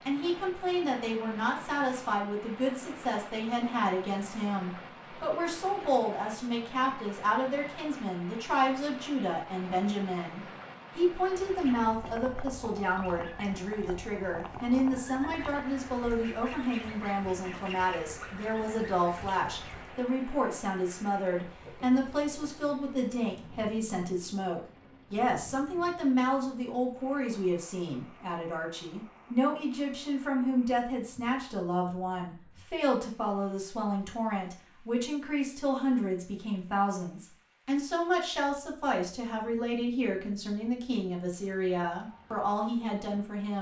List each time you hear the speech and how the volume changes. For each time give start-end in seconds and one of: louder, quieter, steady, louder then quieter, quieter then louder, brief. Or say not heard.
0.1-43.5 steady.